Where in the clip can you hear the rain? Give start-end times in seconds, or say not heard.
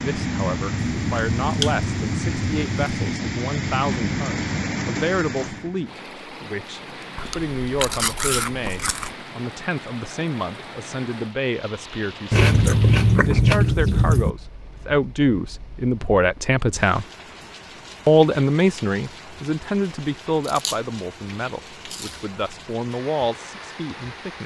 0.0-24.4.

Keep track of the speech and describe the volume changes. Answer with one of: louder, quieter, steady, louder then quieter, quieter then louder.
louder then quieter.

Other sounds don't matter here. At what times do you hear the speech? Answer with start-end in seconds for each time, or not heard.
0.0-17.1, 18.1-24.4.